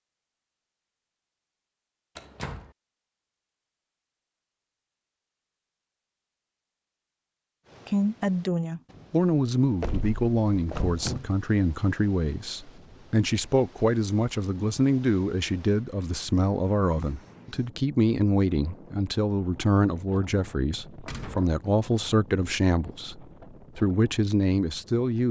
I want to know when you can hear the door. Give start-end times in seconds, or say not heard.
2.1-2.7, 9.8-11.3, 21.1-22.1.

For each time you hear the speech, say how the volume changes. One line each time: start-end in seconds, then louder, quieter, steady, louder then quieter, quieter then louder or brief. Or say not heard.
7.8-25.2 steady.